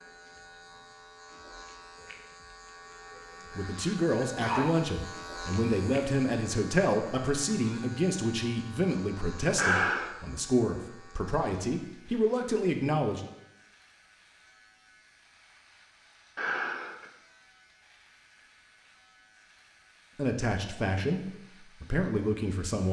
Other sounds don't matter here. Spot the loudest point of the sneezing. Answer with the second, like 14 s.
10 s.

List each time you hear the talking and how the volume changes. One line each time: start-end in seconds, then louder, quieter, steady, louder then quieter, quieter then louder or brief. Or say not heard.
3.5-13.2 steady
20.1-22.8 brief.